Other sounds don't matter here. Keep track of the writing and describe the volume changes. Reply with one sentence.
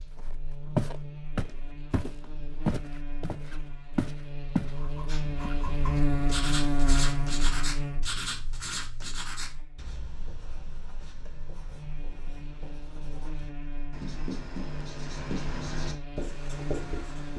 The loudness of the writing goes down, then up.